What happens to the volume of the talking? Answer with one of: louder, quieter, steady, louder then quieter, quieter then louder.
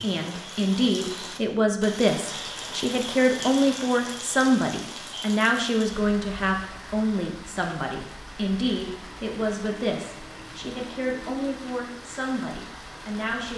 quieter.